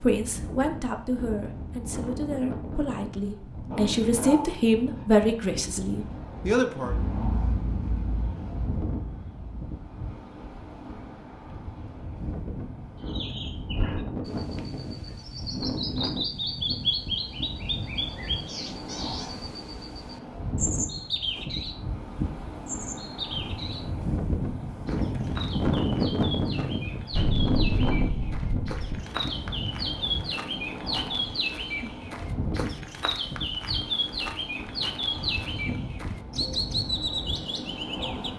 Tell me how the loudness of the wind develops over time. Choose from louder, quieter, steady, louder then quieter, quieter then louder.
louder then quieter.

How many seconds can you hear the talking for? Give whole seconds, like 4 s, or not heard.
7 s.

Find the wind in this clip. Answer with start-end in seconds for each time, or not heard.
0.0-38.3.